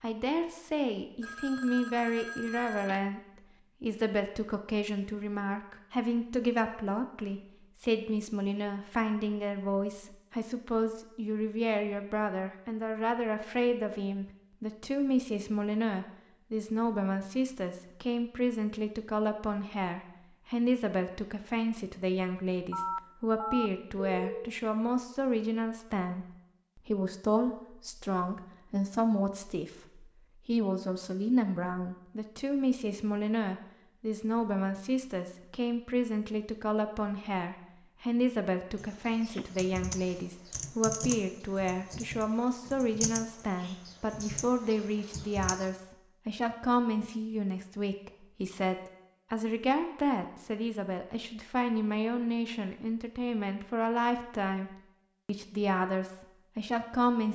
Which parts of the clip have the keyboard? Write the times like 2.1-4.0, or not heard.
38.8-45.7.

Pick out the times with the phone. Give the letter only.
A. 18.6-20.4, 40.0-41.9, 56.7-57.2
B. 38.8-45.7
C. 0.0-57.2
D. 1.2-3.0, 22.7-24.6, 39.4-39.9
D.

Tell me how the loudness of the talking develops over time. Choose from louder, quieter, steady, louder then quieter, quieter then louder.
steady.